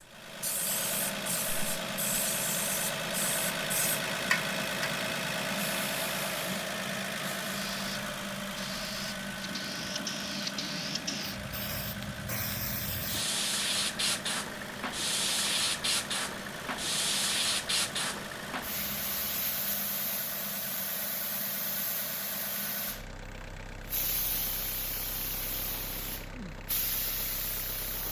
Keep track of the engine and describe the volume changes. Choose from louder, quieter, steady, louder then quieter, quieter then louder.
quieter.